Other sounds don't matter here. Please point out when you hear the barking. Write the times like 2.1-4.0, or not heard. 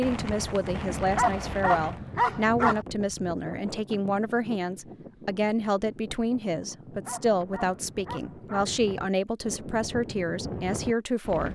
1.1-2.9, 7.0-8.7.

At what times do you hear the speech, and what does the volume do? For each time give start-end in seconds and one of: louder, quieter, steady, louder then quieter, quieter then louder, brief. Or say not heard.
0.0-11.4 steady.